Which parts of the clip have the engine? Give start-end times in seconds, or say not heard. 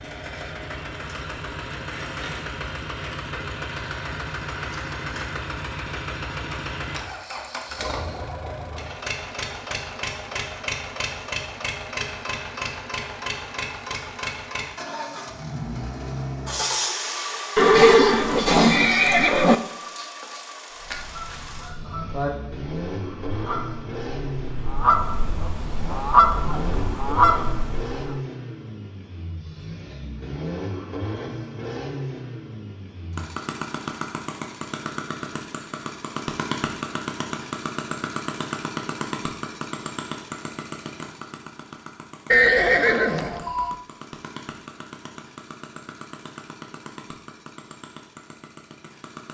0.0-49.2.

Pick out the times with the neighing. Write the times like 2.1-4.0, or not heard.
17.6-19.6, 42.3-43.8.